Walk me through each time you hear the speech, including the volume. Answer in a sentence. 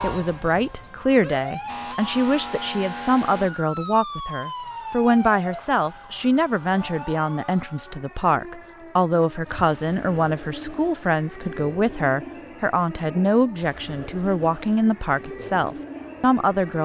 The speech can be heard from 0.0 to 16.8 s, at a steady volume.